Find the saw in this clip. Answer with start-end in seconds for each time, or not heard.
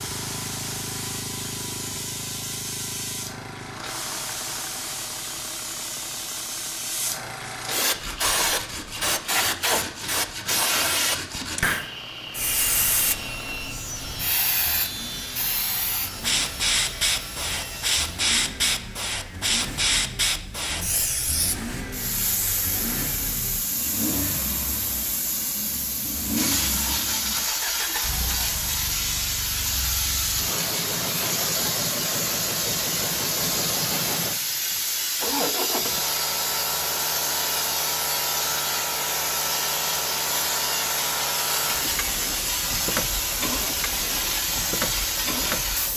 7.8-18.3.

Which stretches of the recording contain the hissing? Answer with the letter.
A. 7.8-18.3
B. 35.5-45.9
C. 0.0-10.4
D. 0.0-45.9
D.